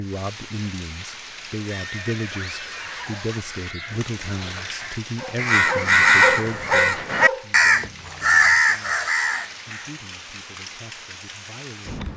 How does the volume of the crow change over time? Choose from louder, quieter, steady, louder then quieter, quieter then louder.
louder.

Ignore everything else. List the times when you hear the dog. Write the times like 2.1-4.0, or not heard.
5.2-7.5.